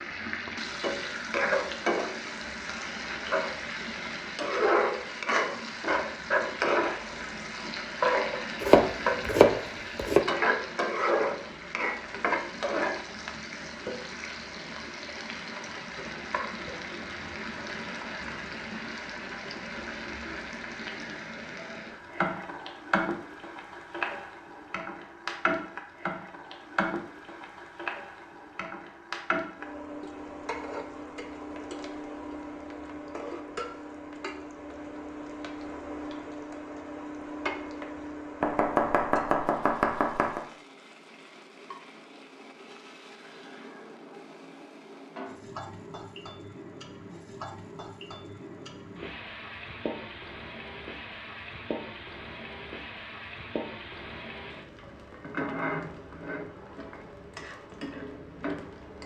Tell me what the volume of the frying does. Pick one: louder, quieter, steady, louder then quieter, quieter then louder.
quieter.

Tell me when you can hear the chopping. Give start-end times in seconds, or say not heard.
8.6-10.2, 38.4-40.5.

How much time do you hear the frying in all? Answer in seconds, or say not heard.
59 s.